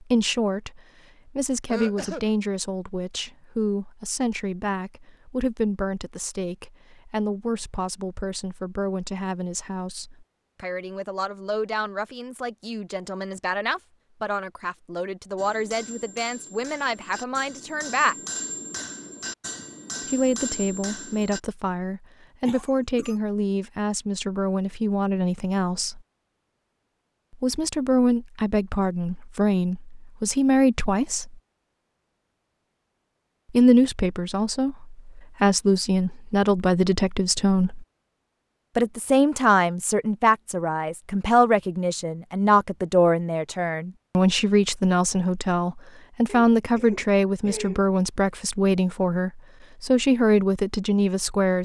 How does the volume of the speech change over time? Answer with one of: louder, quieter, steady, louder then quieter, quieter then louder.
louder.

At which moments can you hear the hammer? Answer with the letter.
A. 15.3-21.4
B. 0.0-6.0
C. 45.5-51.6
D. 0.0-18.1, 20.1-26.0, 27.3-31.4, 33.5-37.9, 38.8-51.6
A.